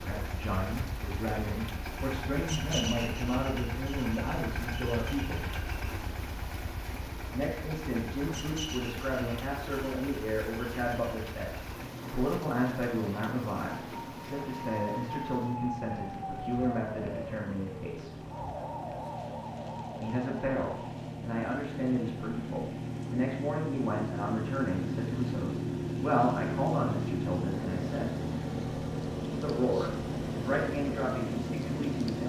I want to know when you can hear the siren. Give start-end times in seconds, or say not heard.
13.7-21.1.